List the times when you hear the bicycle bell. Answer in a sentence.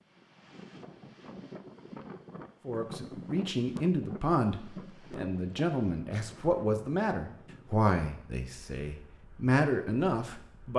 The bicycle bell can't be heard in this clip.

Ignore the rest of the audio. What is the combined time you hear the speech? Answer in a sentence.
You can hear the speech for 8 seconds altogether.